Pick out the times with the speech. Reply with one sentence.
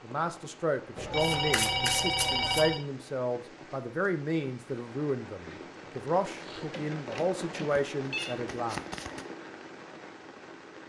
The speech can be heard from 0.0 to 8.8 s.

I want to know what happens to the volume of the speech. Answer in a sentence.
The loudness of the speech stays about the same.